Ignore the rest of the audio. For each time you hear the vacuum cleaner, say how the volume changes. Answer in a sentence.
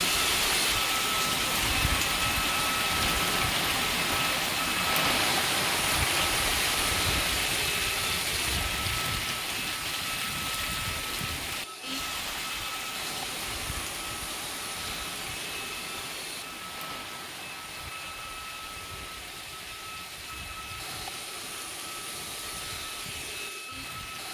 You can hear the vacuum cleaner from 0.0 to 24.2 s, getting quieter.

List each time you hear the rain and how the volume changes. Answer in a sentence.
The rain can be heard from 0.0 to 24.2 s, getting quieter.